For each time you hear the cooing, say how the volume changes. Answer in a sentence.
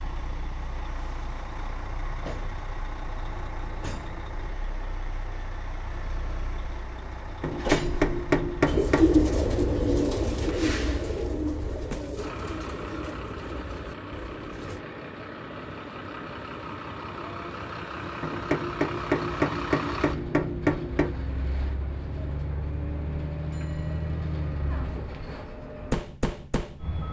You can hear the cooing from 8.7 to 14.8 s, getting quieter.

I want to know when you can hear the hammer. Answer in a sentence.
The hammer can be heard from 7.4 to 9.0 s and from 18.2 to 21.1 s.